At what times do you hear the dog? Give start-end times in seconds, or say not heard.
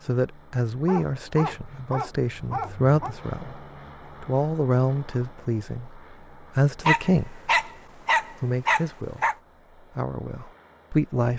0.8-3.1, 6.8-9.3.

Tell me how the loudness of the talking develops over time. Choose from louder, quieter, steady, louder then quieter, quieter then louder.
steady.